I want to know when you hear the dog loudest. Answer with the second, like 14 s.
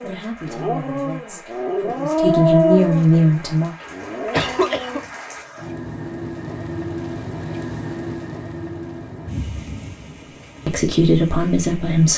3 s.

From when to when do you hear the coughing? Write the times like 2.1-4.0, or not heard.
3.8-5.0.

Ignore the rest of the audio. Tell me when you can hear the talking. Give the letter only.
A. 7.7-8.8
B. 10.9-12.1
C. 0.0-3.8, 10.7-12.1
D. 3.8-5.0
C.